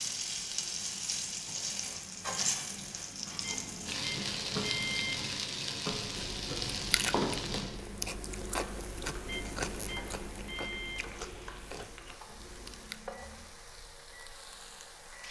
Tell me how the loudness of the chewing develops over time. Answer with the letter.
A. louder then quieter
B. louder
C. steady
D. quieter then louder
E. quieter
E.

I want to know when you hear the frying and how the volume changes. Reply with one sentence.
The frying can be heard from 0.0 to 15.2 s, getting quieter.